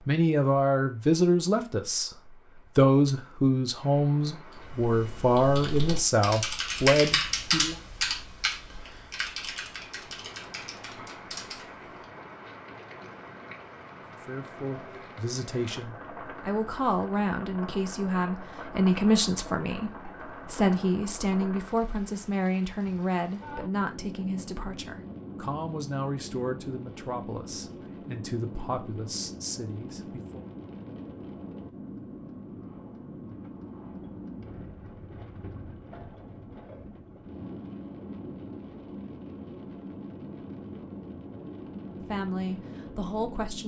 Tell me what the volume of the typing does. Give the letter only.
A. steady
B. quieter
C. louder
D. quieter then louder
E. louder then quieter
E.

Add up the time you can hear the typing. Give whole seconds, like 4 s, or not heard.
8 s.